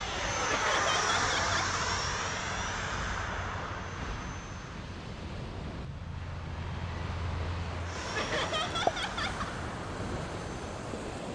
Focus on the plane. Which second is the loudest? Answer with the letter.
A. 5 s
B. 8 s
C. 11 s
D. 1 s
D.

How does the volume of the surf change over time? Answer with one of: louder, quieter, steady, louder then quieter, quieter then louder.
louder.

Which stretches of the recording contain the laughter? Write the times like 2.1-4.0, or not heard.
0.5-1.8, 8.2-9.5.